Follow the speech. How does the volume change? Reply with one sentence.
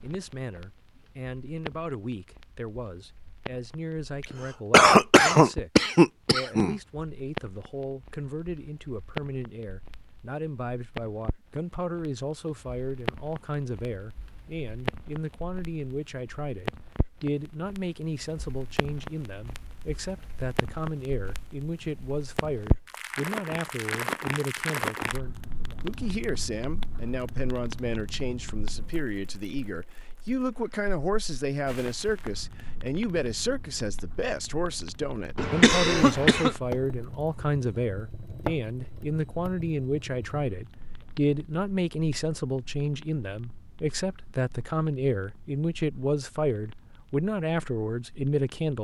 The volume of the speech goes up.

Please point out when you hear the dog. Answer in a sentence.
You can't hear the dog here.